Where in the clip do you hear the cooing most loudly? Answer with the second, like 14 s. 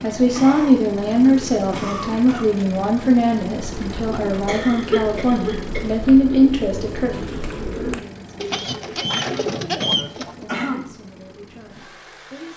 10 s.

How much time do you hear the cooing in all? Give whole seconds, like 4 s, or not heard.
7 s.